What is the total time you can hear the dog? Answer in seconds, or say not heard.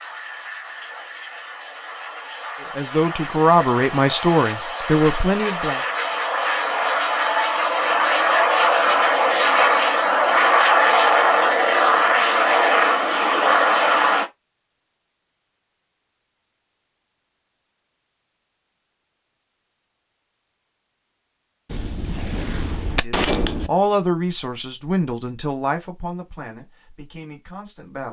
not heard.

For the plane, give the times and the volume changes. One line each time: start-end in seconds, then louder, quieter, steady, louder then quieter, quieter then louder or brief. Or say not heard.
0.0-14.2 louder.